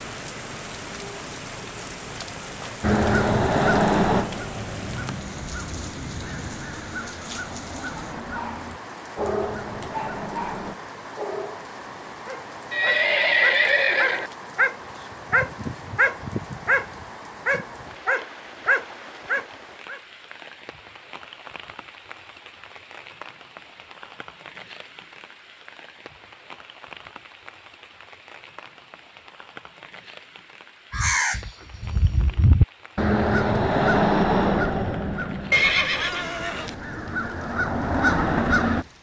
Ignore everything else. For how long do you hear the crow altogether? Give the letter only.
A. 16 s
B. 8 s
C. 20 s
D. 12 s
A.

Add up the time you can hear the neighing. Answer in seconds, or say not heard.
3 s.